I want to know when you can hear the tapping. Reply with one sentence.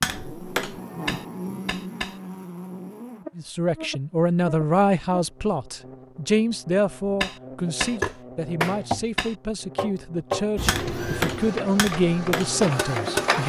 The tapping can be heard from 0.0 to 2.2 s and from 7.2 to 13.3 s.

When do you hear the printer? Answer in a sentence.
You can hear the printer from 10.6 to 13.4 s.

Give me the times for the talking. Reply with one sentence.
The talking can be heard from 3.4 to 13.4 s.